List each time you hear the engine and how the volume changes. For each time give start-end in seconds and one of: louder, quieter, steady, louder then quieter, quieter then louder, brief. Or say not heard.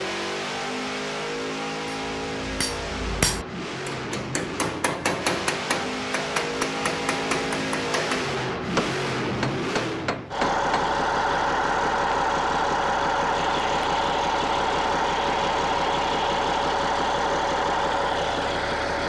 0.0-19.0 louder.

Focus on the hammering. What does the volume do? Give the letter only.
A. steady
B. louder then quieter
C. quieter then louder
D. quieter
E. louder
A.